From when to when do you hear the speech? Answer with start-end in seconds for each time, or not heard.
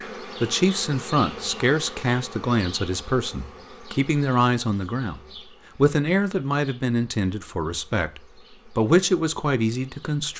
0.4-10.3.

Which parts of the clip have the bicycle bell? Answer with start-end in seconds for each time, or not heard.
not heard.